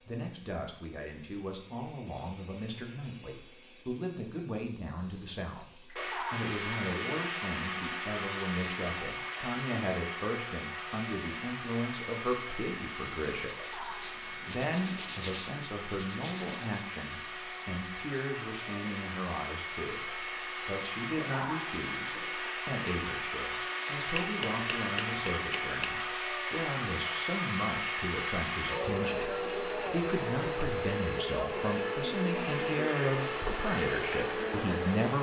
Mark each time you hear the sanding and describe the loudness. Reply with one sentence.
You can hear the sanding from 12.2 to 21.7 s, getting louder then quieter.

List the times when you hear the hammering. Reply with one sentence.
You can hear the hammering from 24.1 to 26.0 s.